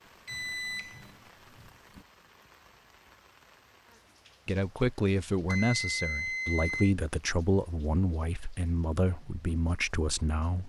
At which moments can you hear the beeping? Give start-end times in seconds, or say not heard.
0.2-2.0, 5.5-7.0.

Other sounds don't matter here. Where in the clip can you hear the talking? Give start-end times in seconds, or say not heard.
4.5-10.6.